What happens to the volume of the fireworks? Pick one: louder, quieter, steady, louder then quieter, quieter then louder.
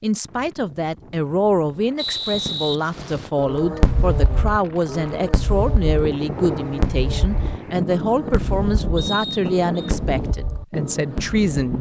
quieter.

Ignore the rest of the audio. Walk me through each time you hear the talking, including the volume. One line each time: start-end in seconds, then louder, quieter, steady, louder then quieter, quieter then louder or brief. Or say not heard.
0.0-11.7 steady.